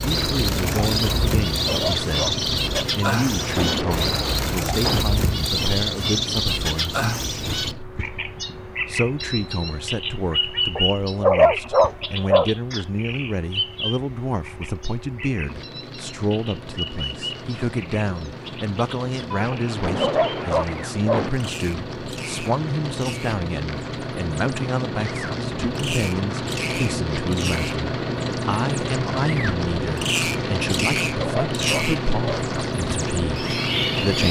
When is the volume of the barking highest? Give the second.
11 s.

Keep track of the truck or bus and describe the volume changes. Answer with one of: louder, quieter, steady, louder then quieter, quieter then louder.
quieter then louder.